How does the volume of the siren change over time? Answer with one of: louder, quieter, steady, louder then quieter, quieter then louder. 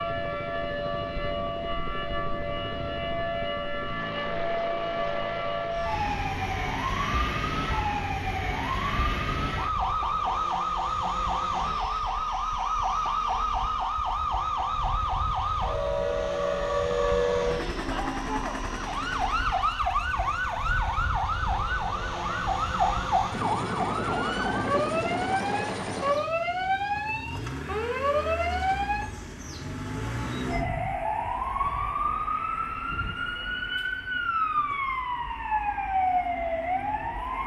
steady.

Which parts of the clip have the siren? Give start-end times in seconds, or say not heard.
0.0-37.4.